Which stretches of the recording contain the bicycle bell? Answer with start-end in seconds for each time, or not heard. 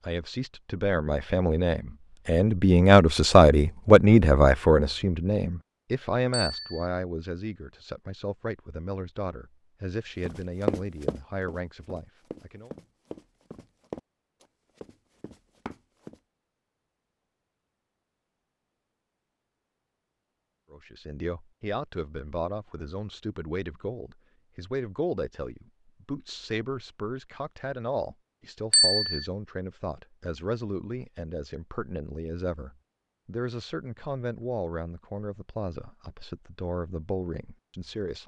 6.3-6.8, 28.7-29.2.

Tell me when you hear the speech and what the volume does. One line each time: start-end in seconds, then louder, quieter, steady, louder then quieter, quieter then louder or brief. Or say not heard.
0.0-12.7 louder then quieter
20.7-38.2 steady.